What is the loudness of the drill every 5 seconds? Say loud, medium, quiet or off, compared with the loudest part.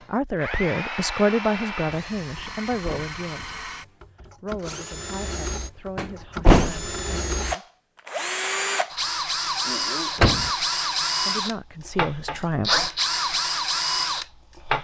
medium, loud, loud.